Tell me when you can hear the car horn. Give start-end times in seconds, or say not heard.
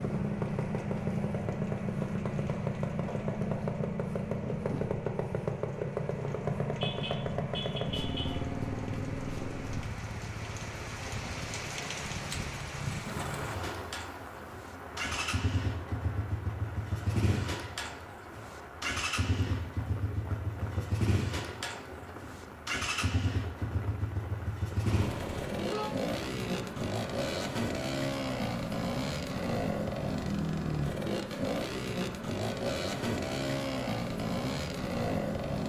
6.8-8.3, 24.9-25.9.